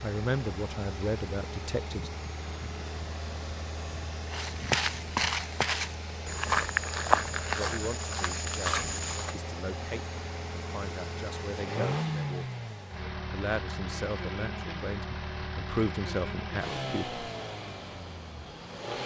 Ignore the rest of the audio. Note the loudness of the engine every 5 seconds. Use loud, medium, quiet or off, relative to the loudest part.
medium, medium, loud, loud.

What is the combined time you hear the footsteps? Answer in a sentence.
The footsteps can be heard for 5 seconds in total.